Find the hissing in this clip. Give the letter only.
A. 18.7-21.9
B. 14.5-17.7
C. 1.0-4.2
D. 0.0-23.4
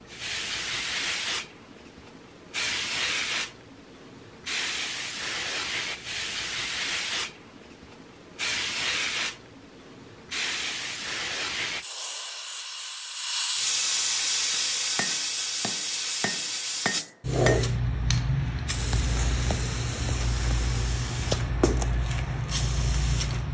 D.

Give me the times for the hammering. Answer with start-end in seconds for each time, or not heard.
14.5-17.7.